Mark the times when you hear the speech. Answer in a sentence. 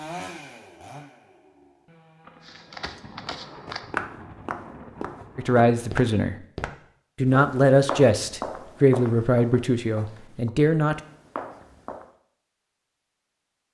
You can hear the speech from 5.3 to 6.3 s and from 7.2 to 11.0 s.